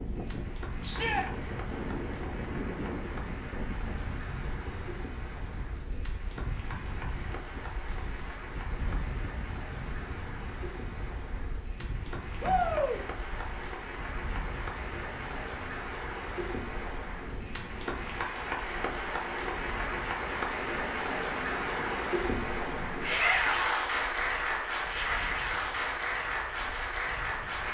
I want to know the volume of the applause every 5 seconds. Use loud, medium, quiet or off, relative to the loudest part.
quiet, quiet, medium, medium, loud, loud.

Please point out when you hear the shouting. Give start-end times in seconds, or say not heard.
0.8-1.2, 12.4-13.0, 23.0-23.8.